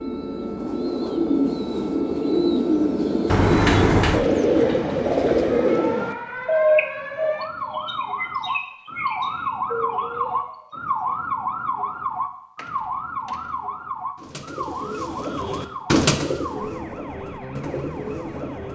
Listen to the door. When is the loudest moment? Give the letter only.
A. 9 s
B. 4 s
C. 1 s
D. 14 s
B.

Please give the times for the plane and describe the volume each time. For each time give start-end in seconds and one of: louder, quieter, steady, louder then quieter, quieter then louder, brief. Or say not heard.
not heard.